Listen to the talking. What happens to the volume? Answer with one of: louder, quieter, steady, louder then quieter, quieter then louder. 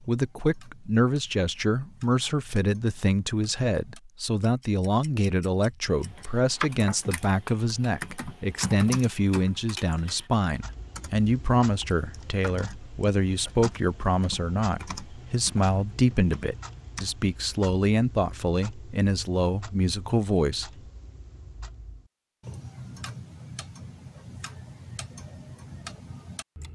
steady.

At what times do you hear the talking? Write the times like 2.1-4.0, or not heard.
0.1-20.7.